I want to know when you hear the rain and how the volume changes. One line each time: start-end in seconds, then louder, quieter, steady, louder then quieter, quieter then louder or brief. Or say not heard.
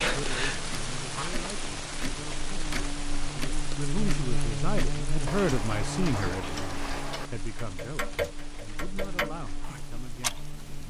0.0-10.8 quieter.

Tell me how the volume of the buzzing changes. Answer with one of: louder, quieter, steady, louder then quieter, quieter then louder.
louder then quieter.